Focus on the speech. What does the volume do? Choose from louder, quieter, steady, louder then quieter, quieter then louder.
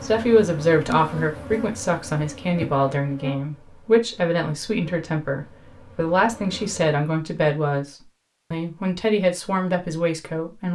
steady.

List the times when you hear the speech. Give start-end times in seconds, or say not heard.
0.0-10.7.